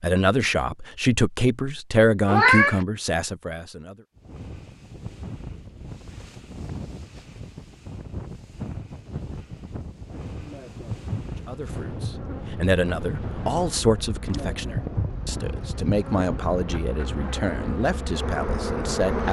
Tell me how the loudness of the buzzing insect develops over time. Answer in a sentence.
The loudness of the buzzing insect goes up.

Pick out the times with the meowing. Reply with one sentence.
The meowing can be heard from 2.2 to 2.9 s and from 14.2 to 15.6 s.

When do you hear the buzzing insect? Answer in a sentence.
You can hear the buzzing insect from 10.2 to 19.2 s.